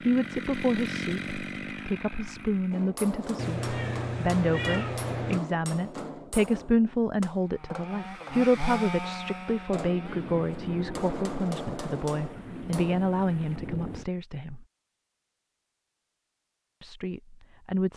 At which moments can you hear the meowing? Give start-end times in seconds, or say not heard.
3.4-5.4.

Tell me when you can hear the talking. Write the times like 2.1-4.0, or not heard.
0.0-14.7, 16.8-17.9.